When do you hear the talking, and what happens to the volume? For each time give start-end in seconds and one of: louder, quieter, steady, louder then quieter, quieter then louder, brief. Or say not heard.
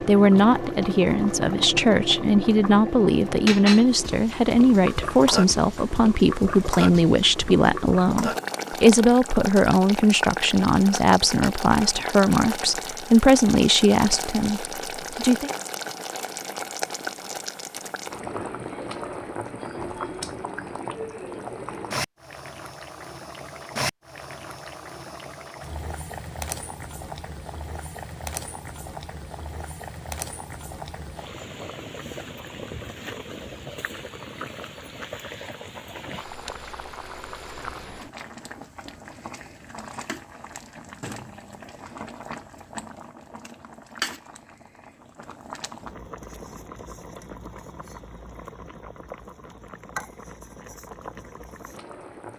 0.1-15.5 steady.